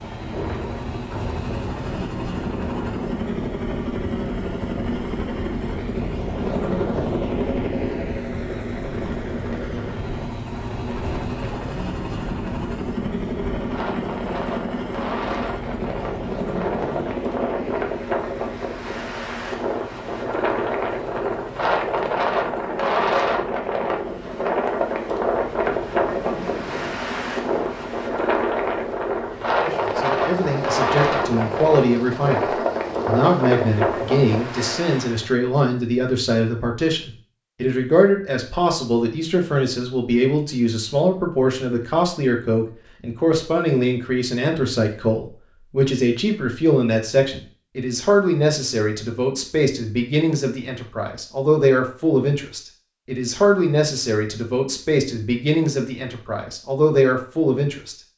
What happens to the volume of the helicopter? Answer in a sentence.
The volume of the helicopter goes down.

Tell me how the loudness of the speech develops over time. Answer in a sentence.
The loudness of the speech stays about the same.